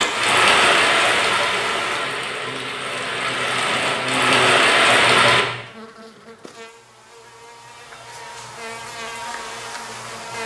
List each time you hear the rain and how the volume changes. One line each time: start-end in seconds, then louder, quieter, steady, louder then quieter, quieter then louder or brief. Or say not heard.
0.0-5.5 quieter then louder.